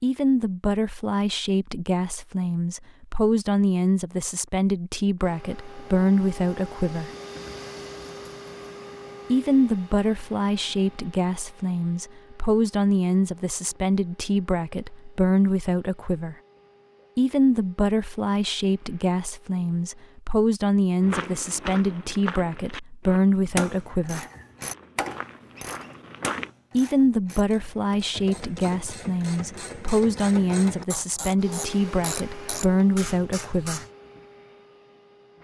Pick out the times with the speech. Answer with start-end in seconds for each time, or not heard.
0.0-7.1, 9.3-16.4, 17.1-24.2, 26.8-33.9.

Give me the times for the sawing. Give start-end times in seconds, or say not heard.
not heard.